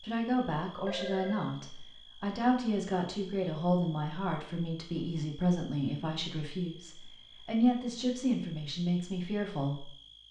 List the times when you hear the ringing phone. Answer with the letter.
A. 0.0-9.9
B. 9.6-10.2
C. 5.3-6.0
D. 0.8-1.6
D.